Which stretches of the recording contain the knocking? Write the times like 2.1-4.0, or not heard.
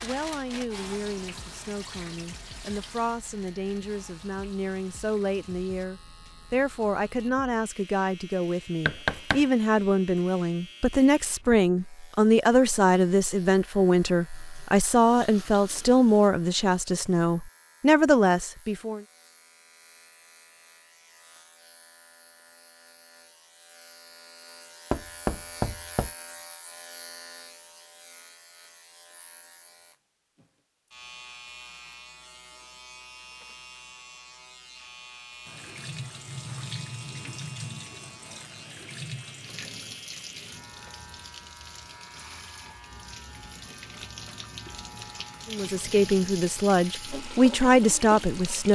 8.8-9.4, 24.9-26.1.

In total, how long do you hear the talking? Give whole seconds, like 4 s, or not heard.
22 s.